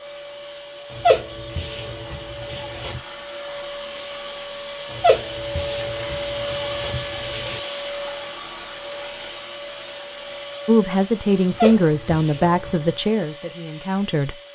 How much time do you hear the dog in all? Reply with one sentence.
You can hear the dog for 6 seconds altogether.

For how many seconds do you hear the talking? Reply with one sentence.
The talking can be heard for 4 seconds in total.